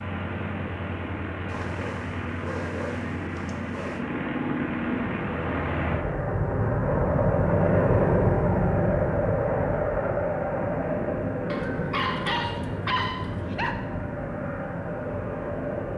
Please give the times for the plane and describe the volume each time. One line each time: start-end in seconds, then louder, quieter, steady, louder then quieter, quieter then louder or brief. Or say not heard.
0.0-15.9 louder then quieter.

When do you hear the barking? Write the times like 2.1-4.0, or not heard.
1.4-4.0, 11.4-13.8.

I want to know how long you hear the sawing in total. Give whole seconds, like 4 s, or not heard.
not heard.